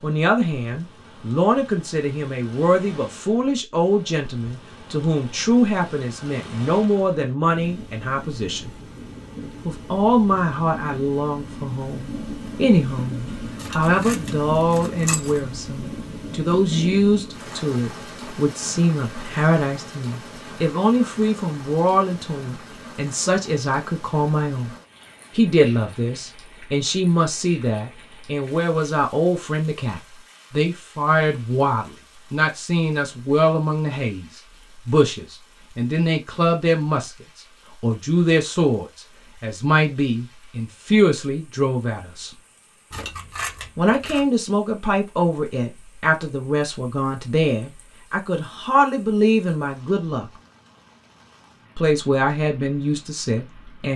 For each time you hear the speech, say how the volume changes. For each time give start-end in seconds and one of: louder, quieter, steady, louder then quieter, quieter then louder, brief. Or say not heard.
0.0-8.7 steady
9.7-24.7 steady
25.4-42.3 steady
43.8-50.3 quieter then louder
51.8-53.9 brief.